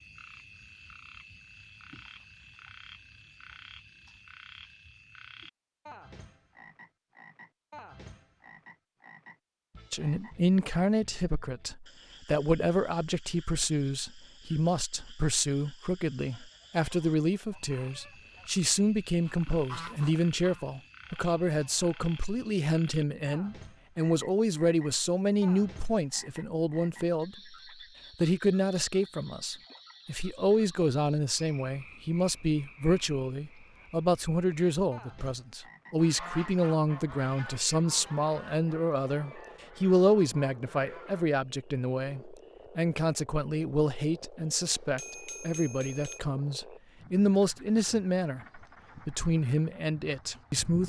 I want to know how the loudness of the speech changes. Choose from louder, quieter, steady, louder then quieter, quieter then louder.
steady.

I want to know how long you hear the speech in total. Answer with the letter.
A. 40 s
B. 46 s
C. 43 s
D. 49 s
A.